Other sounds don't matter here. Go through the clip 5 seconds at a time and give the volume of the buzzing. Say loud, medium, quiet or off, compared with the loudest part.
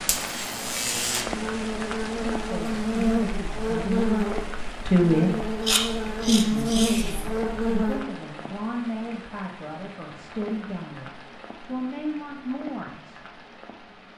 loud, loud, off.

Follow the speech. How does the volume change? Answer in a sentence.
The volume of the speech goes up, then down.